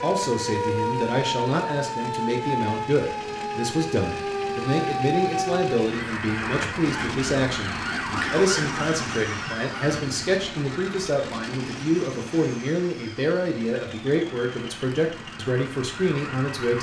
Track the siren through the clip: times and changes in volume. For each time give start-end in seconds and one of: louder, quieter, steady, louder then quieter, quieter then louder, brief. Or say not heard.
0.0-16.7 quieter.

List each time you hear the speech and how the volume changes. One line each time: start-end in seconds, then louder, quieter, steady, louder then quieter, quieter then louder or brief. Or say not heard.
0.0-16.7 steady.